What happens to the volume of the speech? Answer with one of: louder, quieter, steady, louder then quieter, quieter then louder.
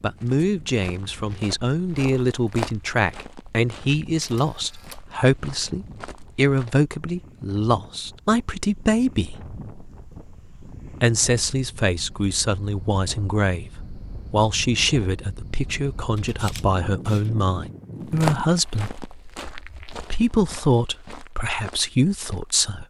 steady.